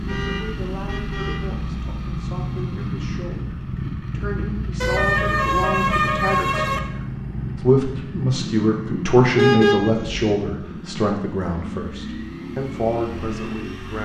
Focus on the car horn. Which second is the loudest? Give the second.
10 s.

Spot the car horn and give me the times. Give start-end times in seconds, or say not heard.
0.1-1.4, 4.8-6.8, 9.3-10.3.